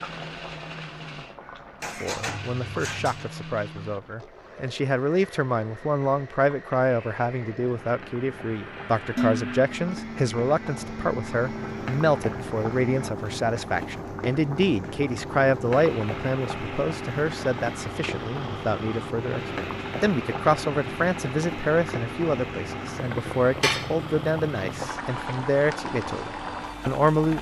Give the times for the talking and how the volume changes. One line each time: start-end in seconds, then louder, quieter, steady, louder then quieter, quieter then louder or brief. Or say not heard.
2.0-27.3 steady.